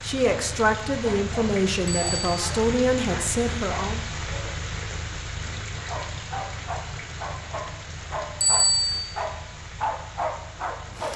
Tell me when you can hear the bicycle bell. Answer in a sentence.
The bicycle bell can be heard from 1.9 to 2.4 s and from 8.4 to 9.1 s.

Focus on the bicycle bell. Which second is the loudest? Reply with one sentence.
The volume of the bicycle bell peaks at 9 seconds.